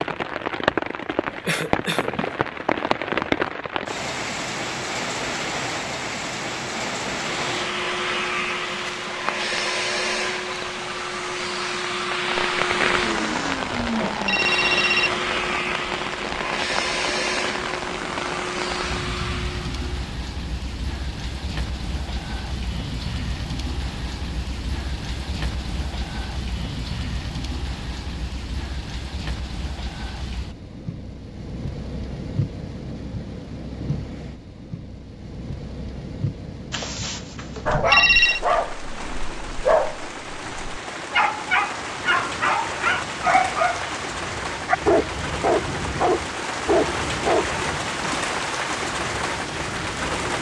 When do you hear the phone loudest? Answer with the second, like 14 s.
38 s.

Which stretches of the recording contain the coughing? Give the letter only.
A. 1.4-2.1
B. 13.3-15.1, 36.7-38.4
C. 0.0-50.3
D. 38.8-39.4
A.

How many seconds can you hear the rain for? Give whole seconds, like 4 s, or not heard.
50 s.